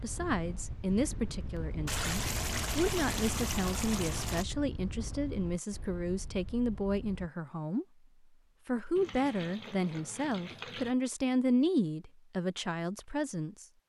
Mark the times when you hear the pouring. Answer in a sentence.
You can hear the pouring from 1.9 to 4.5 s and from 8.9 to 10.9 s.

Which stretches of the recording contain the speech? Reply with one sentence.
The speech can be heard from 0.0 to 7.8 s and from 8.7 to 13.7 s.